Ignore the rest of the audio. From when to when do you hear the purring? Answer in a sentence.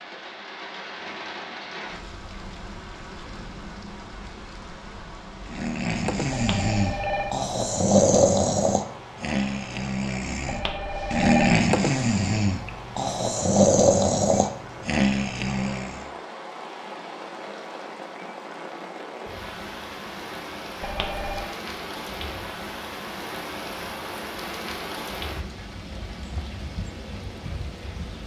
You can't hear the purring here.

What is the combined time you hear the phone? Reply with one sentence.
The phone can be heard for 3 seconds in total.